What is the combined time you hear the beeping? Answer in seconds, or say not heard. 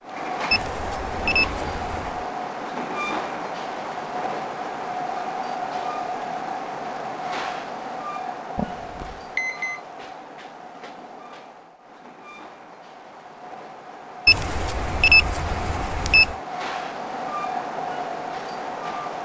5 s.